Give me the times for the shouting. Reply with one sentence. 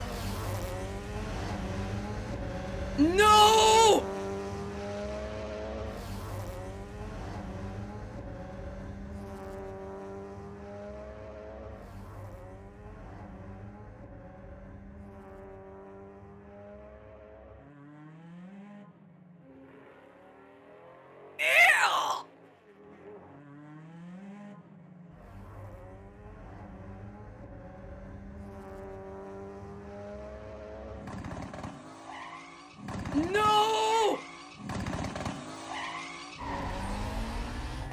You can hear the shouting from 3.0 to 4.0 s, from 21.4 to 22.2 s and from 33.1 to 34.2 s.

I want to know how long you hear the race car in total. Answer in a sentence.
The race car can be heard for 38 seconds in total.